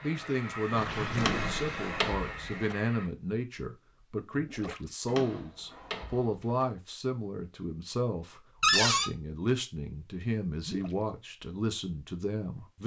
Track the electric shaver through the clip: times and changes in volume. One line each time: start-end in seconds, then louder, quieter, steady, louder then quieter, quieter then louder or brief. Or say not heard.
not heard.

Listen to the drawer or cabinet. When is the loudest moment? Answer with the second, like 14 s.
9 s.